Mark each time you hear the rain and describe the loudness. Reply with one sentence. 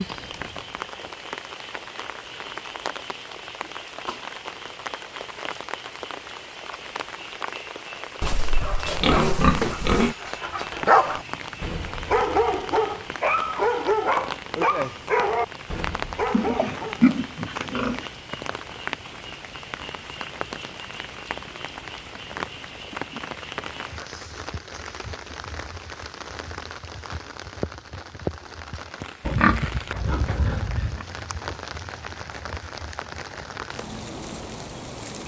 You can hear the rain from 0.0 to 35.2 s, at a steady volume.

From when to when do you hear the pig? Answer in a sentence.
You can hear the pig from 8.2 to 10.2 s, from 16.3 to 18.1 s and from 29.2 to 31.1 s.